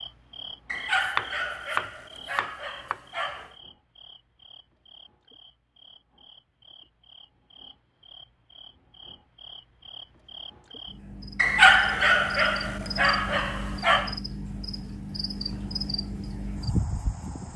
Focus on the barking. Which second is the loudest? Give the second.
12 s.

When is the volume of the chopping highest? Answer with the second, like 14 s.
1 s.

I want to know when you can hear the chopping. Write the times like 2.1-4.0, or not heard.
1.0-3.0.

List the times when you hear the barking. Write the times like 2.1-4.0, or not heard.
0.7-3.5, 11.3-14.2.